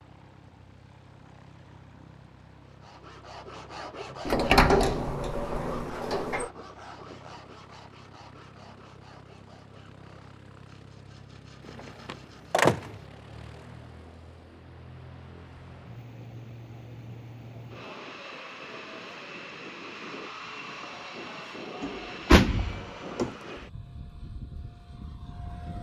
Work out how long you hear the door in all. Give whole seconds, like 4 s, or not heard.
5 s.